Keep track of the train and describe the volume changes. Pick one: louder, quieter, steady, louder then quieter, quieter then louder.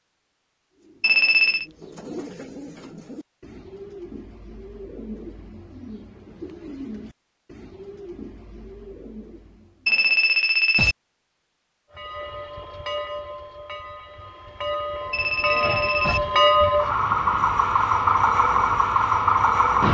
louder.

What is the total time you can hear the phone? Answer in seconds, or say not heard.
3 s.